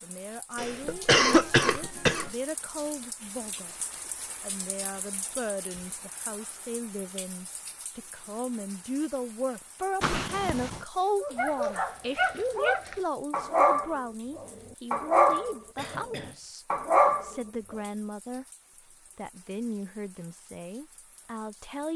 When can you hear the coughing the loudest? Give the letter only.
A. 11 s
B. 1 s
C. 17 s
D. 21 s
B.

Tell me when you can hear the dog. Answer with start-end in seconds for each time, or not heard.
11.2-16.1, 16.7-17.4.